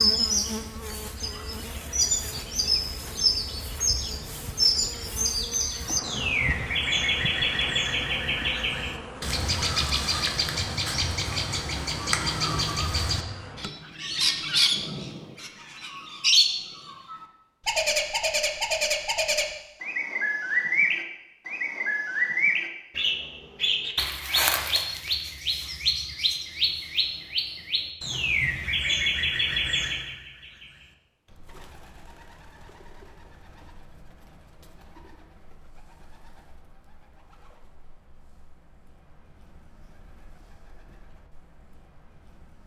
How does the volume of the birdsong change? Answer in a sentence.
The loudness of the birdsong goes down.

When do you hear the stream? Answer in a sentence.
The stream can't be heard in this clip.